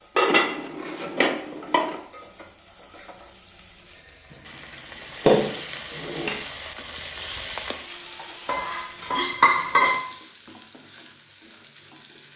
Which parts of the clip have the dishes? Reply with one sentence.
You can hear the dishes from 0.1 to 2.0 s, from 4.7 to 6.4 s and from 8.4 to 10.0 s.